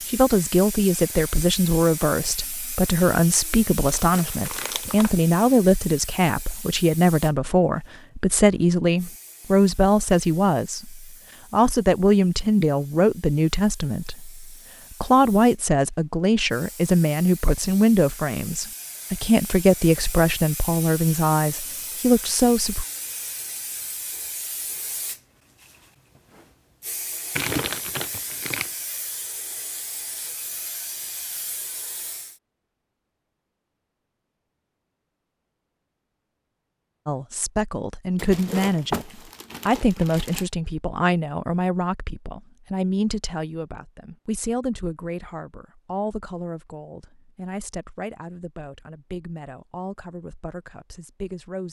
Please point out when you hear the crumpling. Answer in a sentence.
You can hear the crumpling from 3.8 to 5.2 s, from 27.4 to 28.7 s and from 38.1 to 40.5 s.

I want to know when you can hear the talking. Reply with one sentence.
You can hear the talking from 0.1 to 22.9 s and from 37.0 to 51.6 s.